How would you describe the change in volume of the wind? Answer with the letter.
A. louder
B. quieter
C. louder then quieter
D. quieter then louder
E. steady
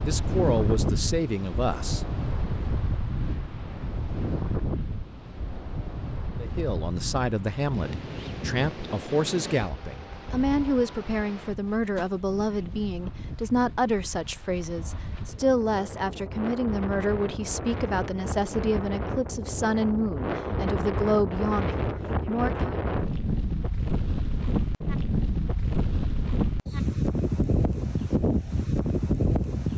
D.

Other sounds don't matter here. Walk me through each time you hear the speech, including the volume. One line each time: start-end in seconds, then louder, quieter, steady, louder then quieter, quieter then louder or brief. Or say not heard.
0.0-2.0 brief
6.3-22.8 steady.